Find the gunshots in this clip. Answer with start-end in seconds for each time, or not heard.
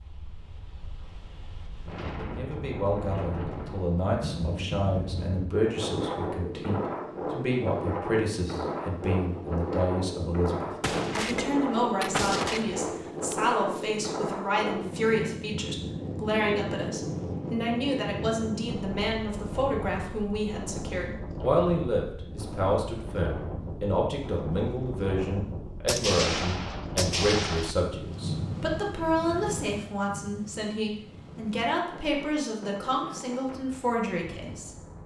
10.8-13.3, 25.9-27.8.